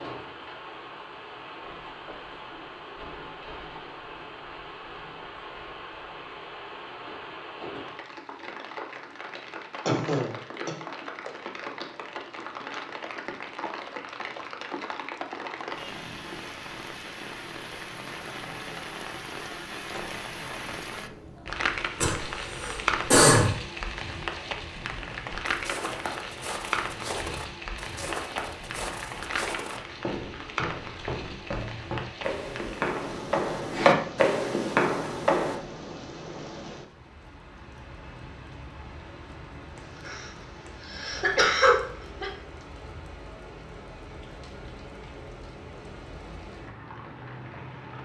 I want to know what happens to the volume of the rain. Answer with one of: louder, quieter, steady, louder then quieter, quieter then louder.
louder then quieter.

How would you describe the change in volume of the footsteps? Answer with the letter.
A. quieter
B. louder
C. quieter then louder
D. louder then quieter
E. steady
B.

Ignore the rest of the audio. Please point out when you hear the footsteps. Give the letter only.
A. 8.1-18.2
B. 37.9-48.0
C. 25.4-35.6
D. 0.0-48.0
C.